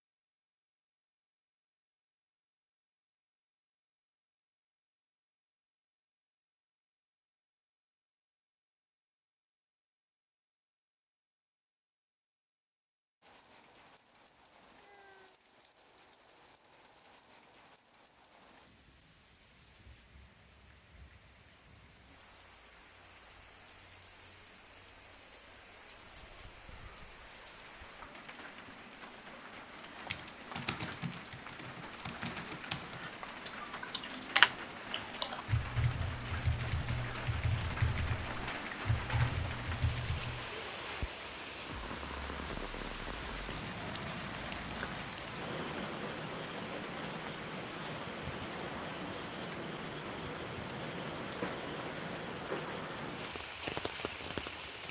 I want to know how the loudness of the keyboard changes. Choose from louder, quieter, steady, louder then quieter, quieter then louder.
louder then quieter.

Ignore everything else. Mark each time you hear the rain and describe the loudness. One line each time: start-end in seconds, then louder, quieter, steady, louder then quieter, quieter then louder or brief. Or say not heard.
13.2-54.8 louder.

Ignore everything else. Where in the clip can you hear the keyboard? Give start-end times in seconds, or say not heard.
29.9-40.5.